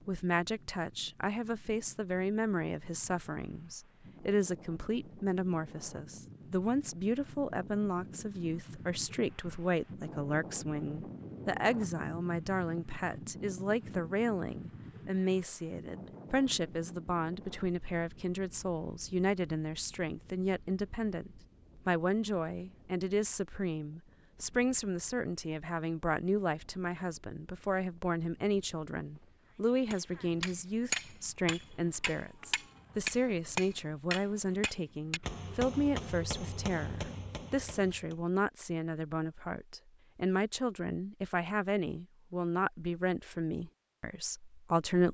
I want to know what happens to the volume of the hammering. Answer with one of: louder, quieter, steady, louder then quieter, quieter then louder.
quieter.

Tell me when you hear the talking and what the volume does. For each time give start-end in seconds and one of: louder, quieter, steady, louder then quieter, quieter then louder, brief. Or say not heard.
0.1-45.0 steady.